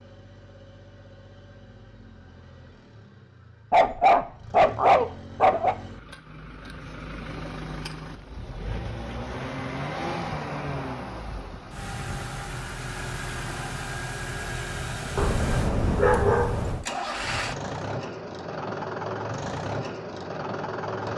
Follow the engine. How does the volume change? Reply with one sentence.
The loudness of the engine goes up.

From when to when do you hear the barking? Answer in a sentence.
You can hear the barking from 3.7 to 5.8 s and from 15.2 to 16.9 s.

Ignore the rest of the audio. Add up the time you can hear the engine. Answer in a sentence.
You can hear the engine for 21 seconds altogether.